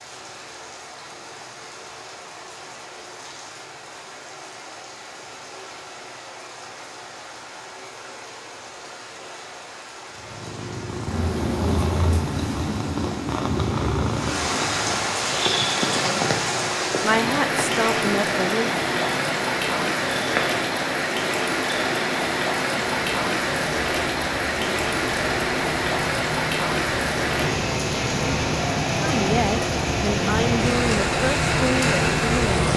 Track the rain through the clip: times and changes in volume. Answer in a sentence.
You can hear the rain from 0.0 to 32.7 s, getting louder.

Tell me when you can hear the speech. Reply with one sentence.
You can hear the speech from 17.0 to 18.8 s and from 28.9 to 32.6 s.